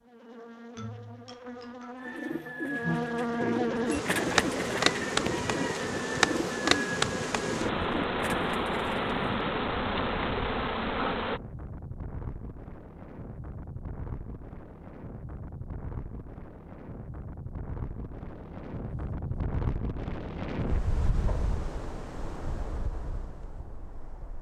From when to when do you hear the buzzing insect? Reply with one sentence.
You can hear the buzzing insect from 0.0 to 11.4 s.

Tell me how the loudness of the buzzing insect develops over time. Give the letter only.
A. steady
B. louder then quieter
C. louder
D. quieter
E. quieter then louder
C.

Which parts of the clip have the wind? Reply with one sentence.
The wind can be heard from 3.8 to 24.3 s.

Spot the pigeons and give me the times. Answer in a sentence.
The pigeons can be heard from 1.9 to 9.4 s.